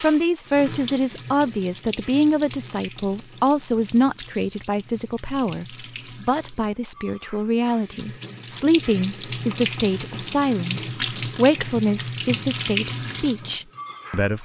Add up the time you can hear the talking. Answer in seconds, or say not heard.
14 s.